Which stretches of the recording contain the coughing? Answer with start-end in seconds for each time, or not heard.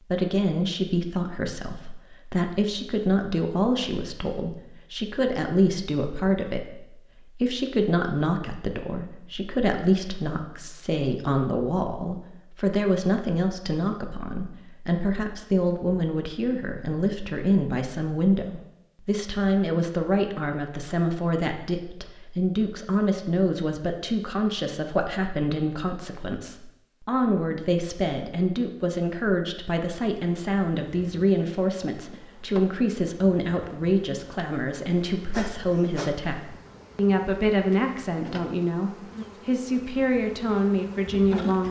not heard.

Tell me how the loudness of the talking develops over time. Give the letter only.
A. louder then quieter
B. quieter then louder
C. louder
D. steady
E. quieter
D.